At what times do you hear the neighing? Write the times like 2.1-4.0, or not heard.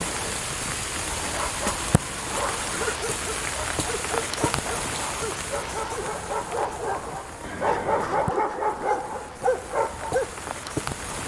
1.1-2.8, 7.4-8.3.